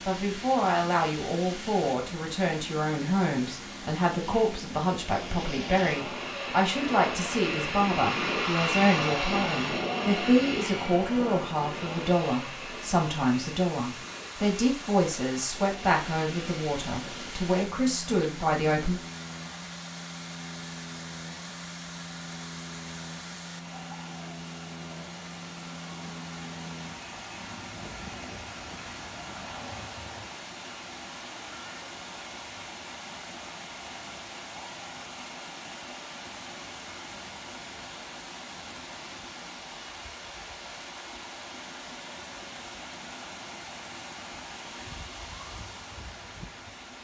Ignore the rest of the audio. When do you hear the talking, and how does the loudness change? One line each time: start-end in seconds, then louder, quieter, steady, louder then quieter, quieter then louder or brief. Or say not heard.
0.1-19.0 steady.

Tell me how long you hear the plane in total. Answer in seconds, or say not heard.
30 s.